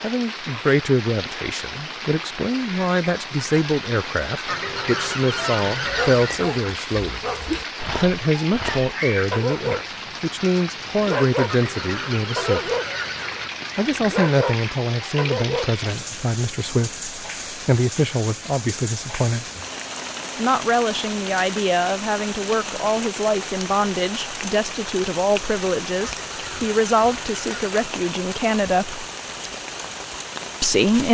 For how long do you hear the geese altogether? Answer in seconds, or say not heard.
6 s.